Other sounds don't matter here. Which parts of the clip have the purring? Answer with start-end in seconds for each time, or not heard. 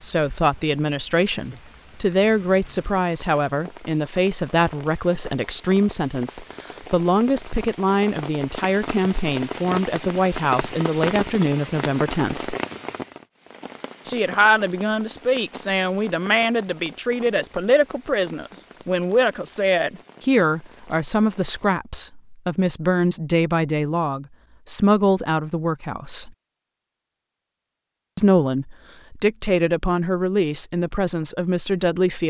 not heard.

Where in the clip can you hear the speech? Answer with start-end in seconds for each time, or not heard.
0.0-12.6, 14.1-26.3, 28.1-32.2.